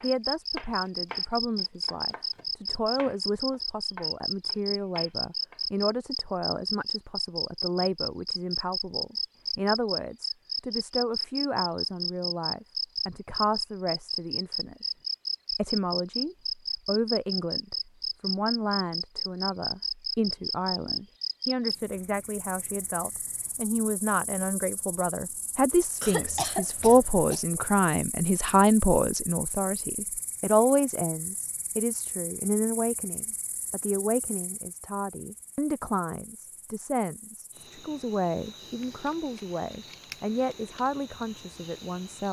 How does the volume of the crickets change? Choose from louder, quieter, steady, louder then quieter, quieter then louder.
quieter.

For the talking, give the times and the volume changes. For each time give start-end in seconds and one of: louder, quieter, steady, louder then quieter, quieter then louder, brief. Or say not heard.
0.0-14.9 steady
15.5-42.2 louder then quieter.